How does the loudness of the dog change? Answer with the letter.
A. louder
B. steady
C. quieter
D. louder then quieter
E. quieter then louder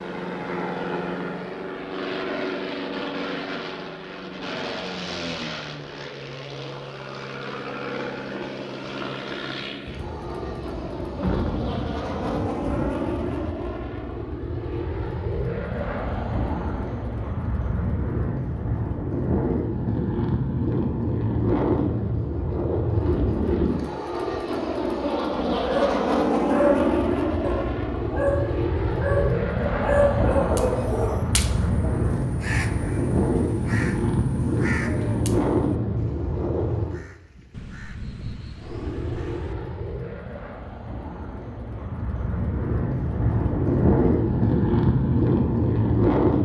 E.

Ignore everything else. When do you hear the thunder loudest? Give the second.
11 s.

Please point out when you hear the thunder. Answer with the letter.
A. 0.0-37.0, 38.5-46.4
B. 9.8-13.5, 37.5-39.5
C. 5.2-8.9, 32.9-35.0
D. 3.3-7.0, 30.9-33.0
B.